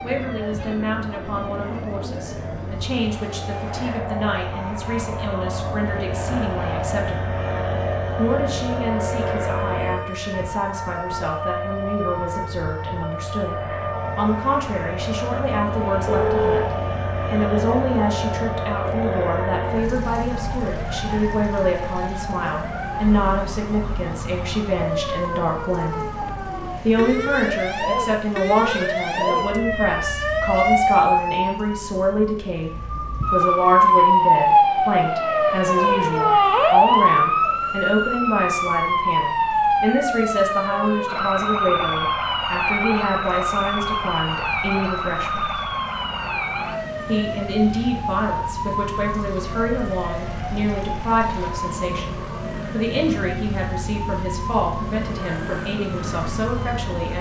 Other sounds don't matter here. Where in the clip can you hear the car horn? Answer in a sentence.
The car horn can be heard from 16.1 to 16.6 s.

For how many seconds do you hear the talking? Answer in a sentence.
The talking can be heard for 54 seconds in total.